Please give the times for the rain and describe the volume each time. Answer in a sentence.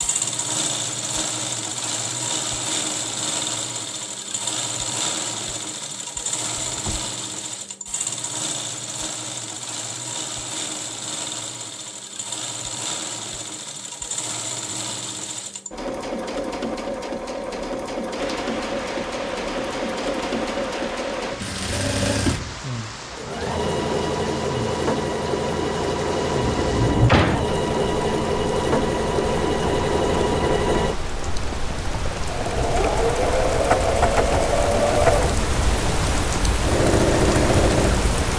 The rain can be heard from 18.1 to 38.3 s, getting louder.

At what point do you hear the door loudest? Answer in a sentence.
The volume of the door peaks at 27 seconds.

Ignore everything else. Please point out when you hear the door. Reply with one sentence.
You can hear the door from 6.5 to 7.1 s and from 26.6 to 27.4 s.